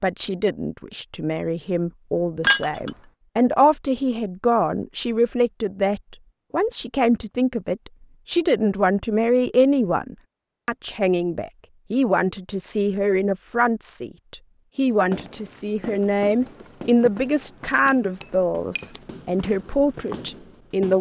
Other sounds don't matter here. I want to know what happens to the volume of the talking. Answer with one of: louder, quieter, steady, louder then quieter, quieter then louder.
steady.